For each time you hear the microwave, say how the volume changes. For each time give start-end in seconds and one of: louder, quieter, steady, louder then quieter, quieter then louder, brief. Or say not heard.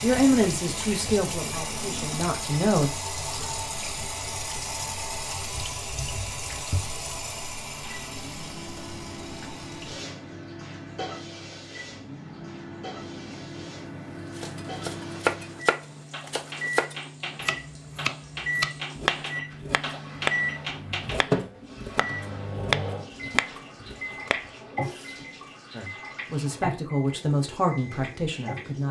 7.8-28.8 louder then quieter.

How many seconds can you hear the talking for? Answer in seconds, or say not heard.
6 s.